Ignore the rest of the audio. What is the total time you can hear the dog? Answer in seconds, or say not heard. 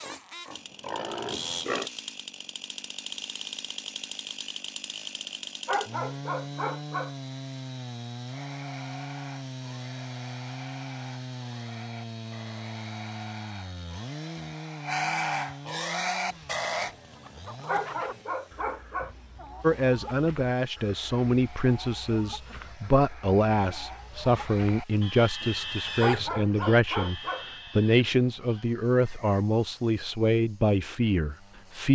4 s.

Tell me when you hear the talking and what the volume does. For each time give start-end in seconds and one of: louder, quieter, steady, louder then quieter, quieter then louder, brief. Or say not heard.
19.6-31.9 steady.